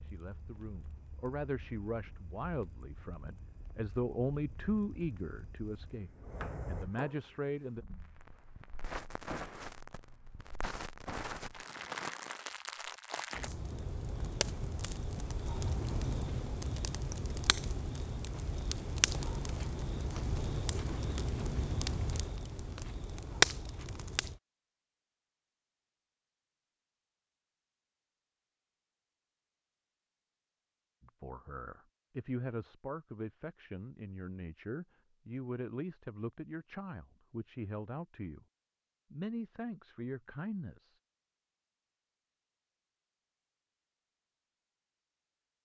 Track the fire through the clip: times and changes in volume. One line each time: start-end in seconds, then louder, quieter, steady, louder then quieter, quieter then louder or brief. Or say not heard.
0.0-24.4 louder.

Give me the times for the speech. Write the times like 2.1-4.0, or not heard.
0.0-7.8, 31.0-38.5, 39.1-41.0.